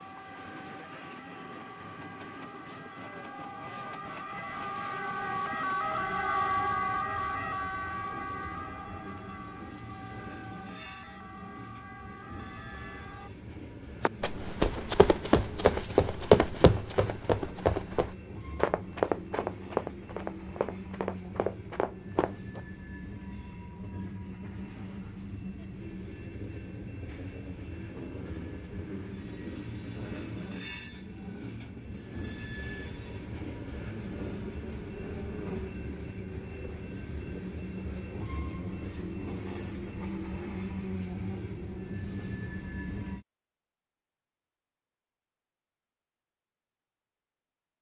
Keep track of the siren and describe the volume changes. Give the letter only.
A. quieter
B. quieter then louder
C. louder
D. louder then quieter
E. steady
D.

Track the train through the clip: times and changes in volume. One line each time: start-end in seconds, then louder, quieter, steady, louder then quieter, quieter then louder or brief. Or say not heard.
0.0-43.2 louder.